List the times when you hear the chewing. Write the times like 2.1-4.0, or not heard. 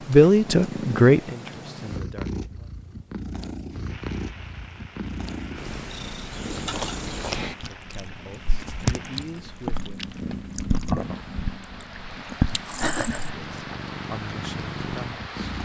6.3-13.8.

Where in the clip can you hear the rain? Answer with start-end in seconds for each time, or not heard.
3.8-15.6.